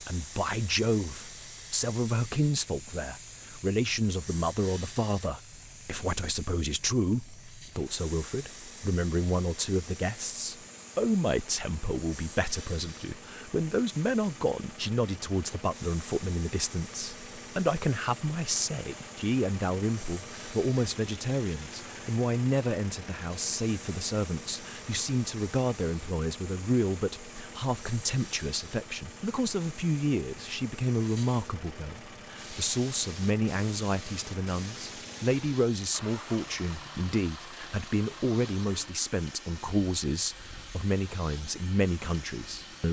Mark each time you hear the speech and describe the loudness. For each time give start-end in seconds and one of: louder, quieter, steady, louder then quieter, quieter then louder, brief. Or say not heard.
0.1-42.8 steady.